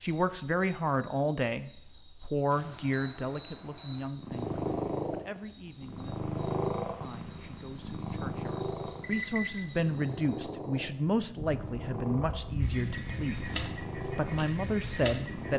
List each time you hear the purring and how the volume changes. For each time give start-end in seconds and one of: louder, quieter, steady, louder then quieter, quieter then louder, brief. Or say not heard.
4.2-15.5 quieter.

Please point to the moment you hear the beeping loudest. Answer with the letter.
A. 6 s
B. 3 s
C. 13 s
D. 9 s
D.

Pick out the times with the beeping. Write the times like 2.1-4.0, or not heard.
2.5-4.1, 9.0-9.6.